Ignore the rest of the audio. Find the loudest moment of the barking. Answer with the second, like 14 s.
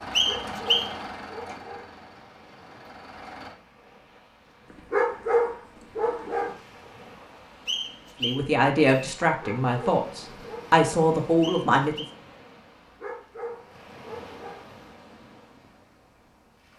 5 s.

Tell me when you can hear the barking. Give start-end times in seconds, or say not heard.
0.2-1.9, 4.9-6.5, 9.4-10.8, 13.0-14.7.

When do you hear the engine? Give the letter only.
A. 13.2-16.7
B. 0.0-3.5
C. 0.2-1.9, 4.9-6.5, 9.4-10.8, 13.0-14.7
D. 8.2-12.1
B.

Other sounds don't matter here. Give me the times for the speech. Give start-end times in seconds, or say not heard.
8.2-12.1.